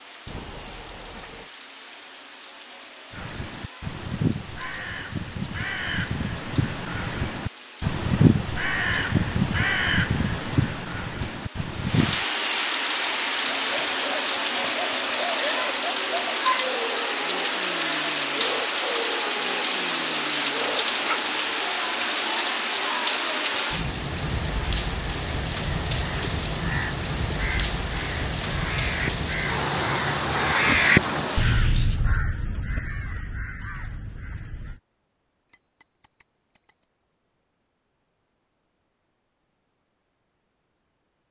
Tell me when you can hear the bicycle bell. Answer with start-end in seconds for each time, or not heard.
0.2-1.5, 35.5-36.9.